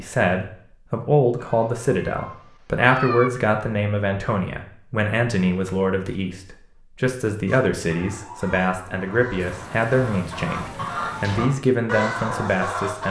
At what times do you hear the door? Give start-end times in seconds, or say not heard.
not heard.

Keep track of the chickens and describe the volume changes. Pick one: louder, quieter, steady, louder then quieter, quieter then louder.
louder.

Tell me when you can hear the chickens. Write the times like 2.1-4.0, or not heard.
7.5-13.0.